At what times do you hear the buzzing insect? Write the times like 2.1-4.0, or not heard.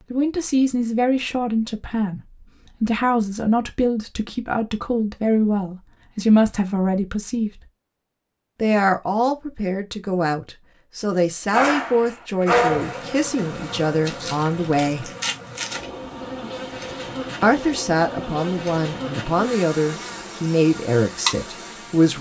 12.6-22.1.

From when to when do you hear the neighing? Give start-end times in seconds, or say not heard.
not heard.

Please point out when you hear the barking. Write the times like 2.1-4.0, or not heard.
11.5-13.1.